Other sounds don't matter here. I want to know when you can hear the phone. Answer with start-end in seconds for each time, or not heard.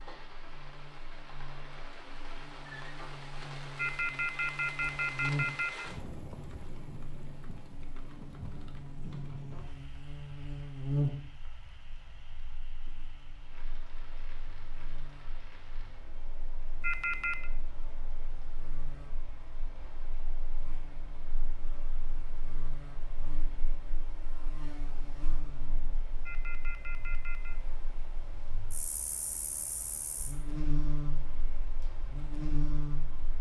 3.8-5.9, 16.8-17.5, 26.2-27.6.